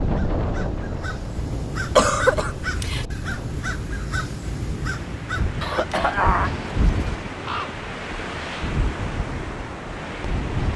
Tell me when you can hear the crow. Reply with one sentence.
You can hear the crow from 0.0 to 7.8 s.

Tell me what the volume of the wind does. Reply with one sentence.
The loudness of the wind goes down, then up.